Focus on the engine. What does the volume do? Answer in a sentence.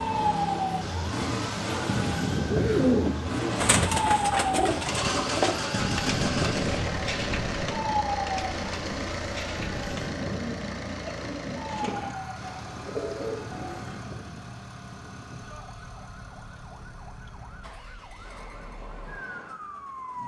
The volume of the engine goes down.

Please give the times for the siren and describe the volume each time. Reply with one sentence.
You can hear the siren from 0.0 to 20.2 s, getting quieter.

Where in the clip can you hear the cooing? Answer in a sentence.
You can hear the cooing from 2.4 to 13.9 s.